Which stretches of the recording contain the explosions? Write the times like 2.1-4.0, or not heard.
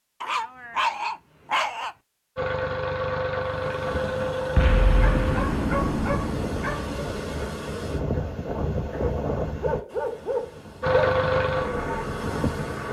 4.5-7.2.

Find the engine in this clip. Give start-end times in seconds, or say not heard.
2.4-5.5, 10.8-12.8.